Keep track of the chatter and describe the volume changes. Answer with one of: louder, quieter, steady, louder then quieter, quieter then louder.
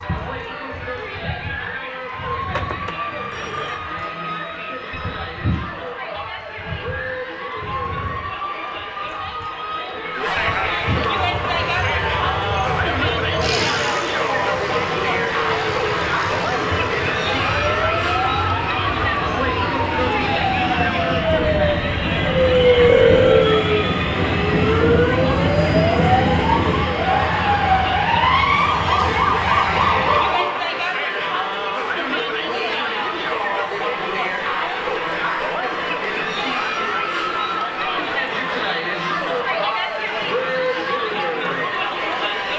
louder.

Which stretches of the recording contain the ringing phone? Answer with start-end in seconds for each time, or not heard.
2.5-3.8, 22.9-23.4.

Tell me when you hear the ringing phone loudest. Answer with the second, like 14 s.
23 s.